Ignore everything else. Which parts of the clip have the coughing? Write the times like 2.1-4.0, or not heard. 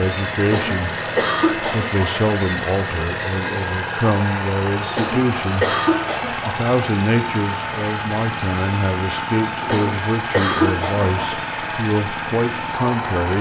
0.5-2.0, 4.9-6.7, 9.6-11.3.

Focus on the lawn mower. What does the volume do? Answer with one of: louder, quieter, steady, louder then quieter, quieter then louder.
steady.